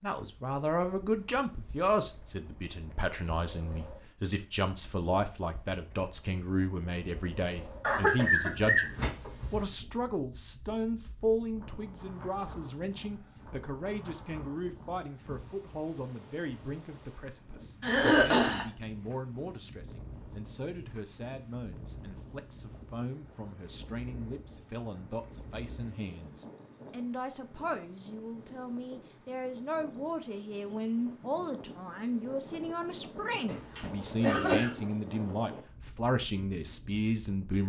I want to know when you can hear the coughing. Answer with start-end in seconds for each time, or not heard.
7.8-9.6, 17.8-18.6, 33.5-34.7.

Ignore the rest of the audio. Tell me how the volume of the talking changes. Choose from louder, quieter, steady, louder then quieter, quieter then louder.
quieter then louder.